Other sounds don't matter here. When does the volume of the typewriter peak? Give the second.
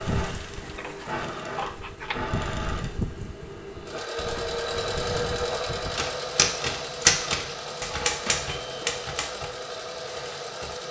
7 s.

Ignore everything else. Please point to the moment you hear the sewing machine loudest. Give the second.
5 s.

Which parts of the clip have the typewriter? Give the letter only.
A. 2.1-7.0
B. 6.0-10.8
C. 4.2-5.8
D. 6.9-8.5
B.